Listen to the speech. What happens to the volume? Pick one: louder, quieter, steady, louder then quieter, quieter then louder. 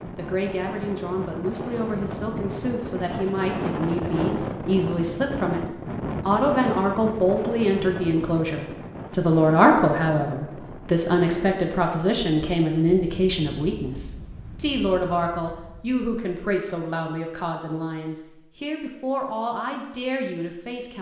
louder then quieter.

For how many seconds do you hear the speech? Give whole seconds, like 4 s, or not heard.
20 s.